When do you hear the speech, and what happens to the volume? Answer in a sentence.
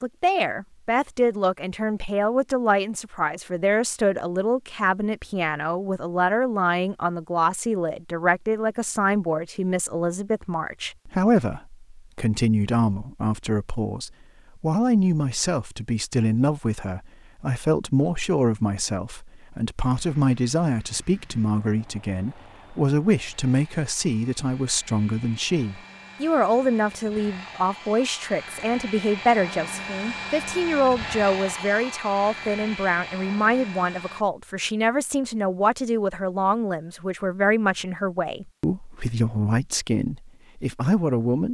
You can hear the speech from 0.0 to 41.4 s, at a steady volume.